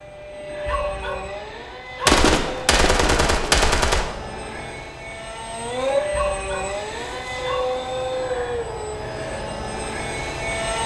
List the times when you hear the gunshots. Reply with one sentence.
You can hear the gunshots from 2.0 to 4.0 s.